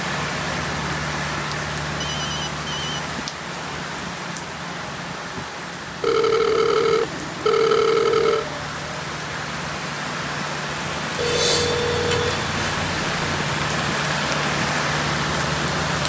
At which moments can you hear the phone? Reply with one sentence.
The phone can be heard from 2.0 to 3.0 s, from 6.0 to 8.4 s and from 11.2 to 13.2 s.